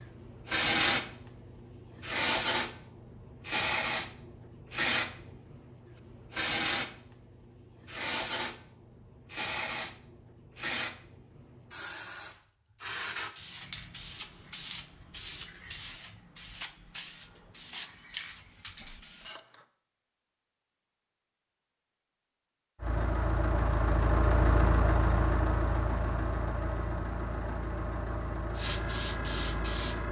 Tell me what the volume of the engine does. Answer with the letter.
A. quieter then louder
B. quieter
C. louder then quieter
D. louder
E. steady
B.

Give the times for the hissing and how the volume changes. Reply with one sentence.
The hissing can be heard from 0.0 to 19.6 s, getting quieter; and briefly from 28.6 to 30.0 s.